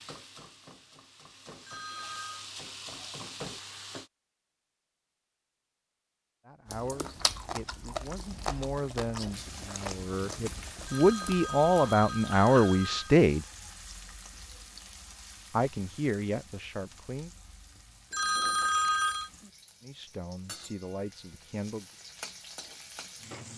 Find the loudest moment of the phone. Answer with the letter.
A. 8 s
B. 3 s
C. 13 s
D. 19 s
D.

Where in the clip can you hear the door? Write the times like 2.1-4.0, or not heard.
not heard.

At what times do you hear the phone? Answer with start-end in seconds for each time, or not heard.
1.6-2.5, 10.8-13.2, 18.1-19.3.